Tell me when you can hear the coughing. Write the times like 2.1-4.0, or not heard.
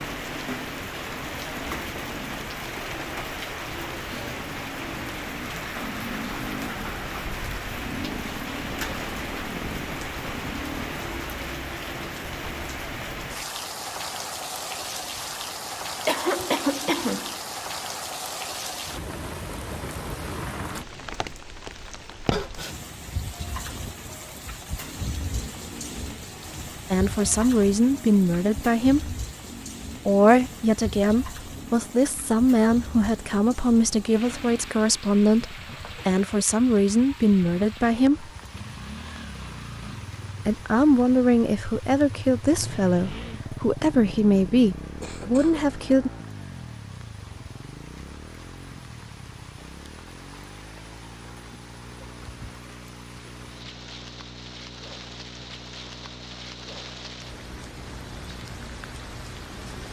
16.1-17.4, 22.3-22.8, 45.0-45.7.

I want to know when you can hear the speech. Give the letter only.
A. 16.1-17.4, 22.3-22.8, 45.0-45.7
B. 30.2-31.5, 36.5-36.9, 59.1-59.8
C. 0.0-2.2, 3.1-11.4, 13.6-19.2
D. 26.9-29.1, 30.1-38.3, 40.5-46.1
D.